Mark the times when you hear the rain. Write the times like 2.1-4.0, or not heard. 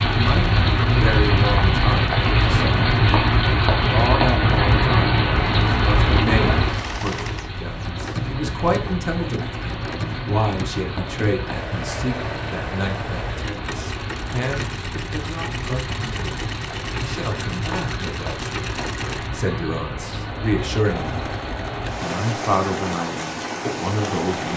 0.0-24.5.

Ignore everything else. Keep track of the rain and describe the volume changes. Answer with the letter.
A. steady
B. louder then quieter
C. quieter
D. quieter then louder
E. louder
C.